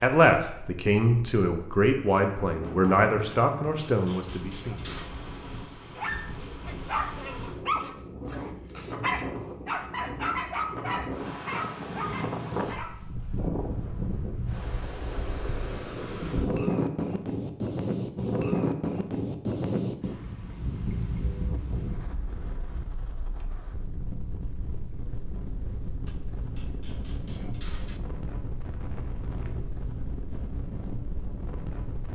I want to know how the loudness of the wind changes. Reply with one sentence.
The loudness of the wind goes up, then down.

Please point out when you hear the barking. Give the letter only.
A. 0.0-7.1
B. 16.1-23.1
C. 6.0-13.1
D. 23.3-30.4
C.